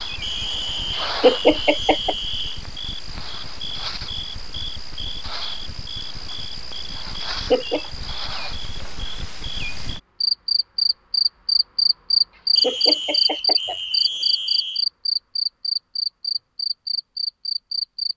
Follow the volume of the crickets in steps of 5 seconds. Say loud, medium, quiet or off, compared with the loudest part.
quiet, quiet, loud, medium.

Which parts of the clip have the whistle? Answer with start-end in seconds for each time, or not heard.
0.2-2.5, 12.6-14.8.